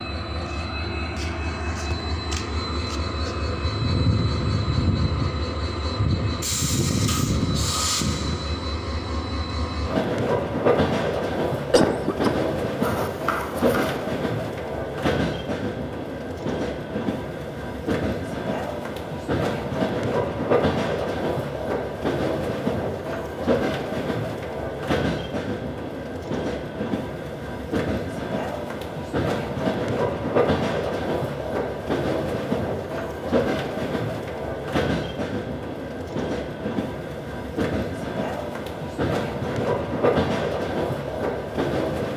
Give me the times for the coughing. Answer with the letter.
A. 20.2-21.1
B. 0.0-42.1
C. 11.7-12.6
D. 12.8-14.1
C.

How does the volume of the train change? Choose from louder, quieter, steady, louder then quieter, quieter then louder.
steady.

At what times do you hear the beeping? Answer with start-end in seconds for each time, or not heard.
12.8-14.1.